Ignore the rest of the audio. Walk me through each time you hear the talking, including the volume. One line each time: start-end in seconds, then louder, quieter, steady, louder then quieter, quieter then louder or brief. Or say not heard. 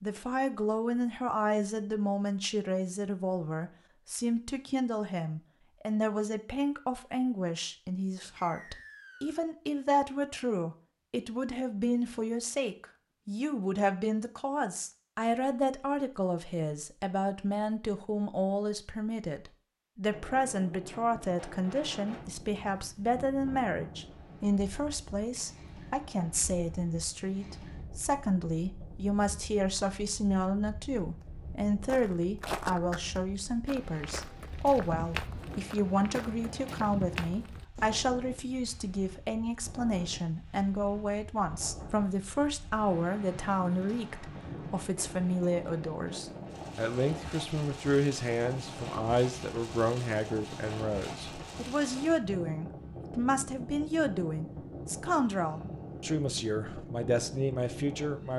0.0-58.3 steady.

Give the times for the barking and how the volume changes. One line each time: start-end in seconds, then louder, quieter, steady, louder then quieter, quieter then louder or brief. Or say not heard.
not heard.